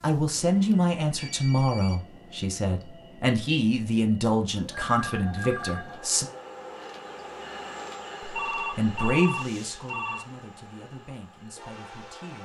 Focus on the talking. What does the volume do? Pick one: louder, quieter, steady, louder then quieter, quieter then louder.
quieter.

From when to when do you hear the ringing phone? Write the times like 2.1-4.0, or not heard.
0.7-1.9, 4.8-6.2, 8.3-10.2.